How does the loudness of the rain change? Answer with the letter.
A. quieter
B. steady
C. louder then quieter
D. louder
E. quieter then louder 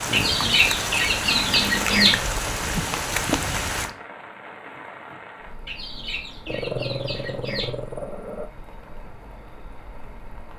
A.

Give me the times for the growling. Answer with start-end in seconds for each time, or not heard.
1.7-2.5, 6.5-8.5.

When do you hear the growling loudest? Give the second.
7 s.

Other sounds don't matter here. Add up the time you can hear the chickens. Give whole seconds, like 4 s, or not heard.
4 s.